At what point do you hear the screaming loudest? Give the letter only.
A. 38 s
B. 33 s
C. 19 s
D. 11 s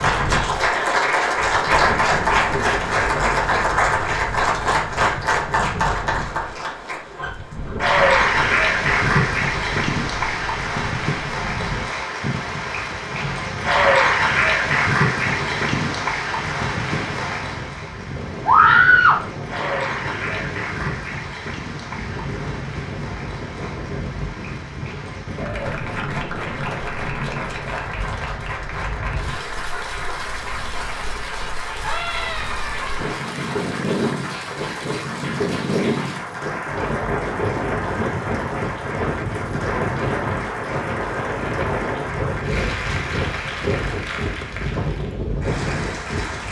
C.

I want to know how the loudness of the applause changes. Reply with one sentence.
The loudness of the applause goes down.